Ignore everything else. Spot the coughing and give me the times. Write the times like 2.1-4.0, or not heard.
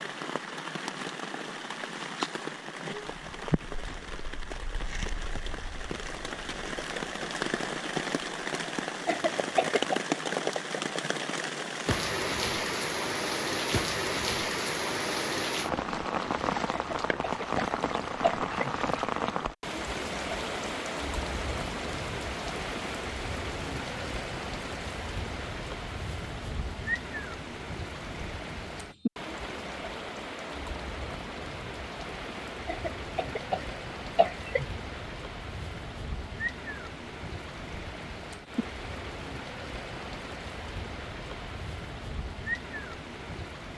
9.1-10.0, 16.7-18.7, 32.6-34.6.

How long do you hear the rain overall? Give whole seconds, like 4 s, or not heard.
44 s.